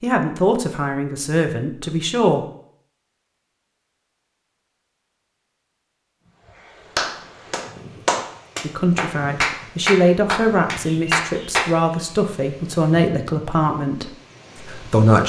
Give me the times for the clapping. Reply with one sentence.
You can hear the clapping from 7.0 to 11.7 s.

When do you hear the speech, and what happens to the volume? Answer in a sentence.
The speech can be heard briefly from 0.0 to 2.5 s; and from 8.6 to 15.2 s, getting quieter.